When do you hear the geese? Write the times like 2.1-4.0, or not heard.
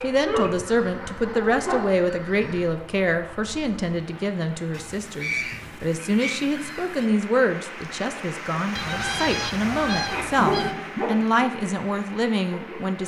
0.4-2.8, 4.7-7.1, 8.8-10.8.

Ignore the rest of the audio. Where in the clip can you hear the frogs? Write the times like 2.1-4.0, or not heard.
not heard.